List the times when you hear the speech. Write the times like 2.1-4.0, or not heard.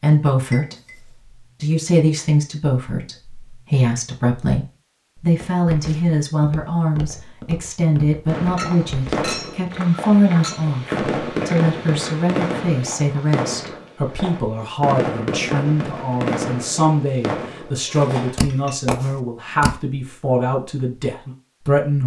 0.0-0.8, 1.6-22.0.